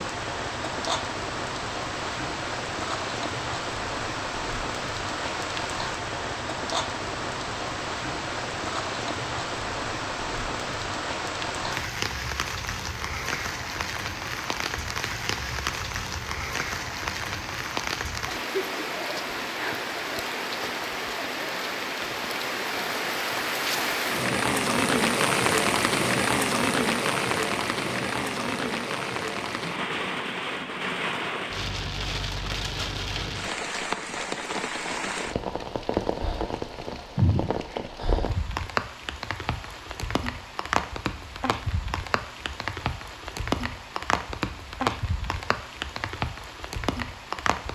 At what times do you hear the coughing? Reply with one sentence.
You can hear the coughing from 37.1 to 37.8 s.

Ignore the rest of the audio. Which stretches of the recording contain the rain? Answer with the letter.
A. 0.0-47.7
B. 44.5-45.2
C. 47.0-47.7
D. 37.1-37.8
A.